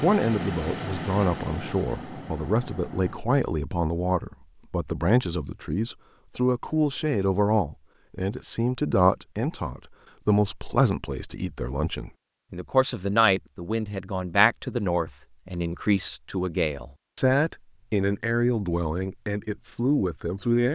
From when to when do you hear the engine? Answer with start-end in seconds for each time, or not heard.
0.0-3.2.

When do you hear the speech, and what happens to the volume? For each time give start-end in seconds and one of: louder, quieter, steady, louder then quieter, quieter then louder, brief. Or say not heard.
0.0-20.7 steady.